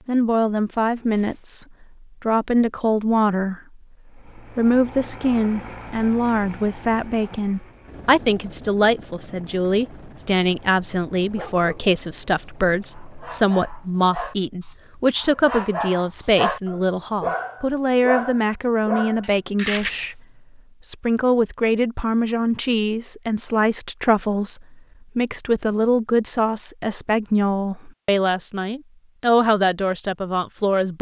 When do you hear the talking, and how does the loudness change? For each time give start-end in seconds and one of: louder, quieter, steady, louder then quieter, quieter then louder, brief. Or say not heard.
0.1-20.2 steady
20.9-30.9 steady.